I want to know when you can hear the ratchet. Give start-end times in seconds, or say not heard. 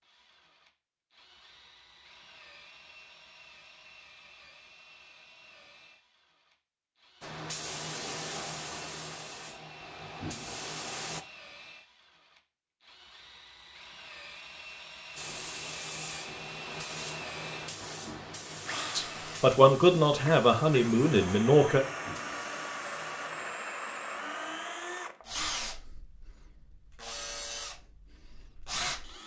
not heard.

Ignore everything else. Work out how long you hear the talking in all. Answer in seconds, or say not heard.
3 s.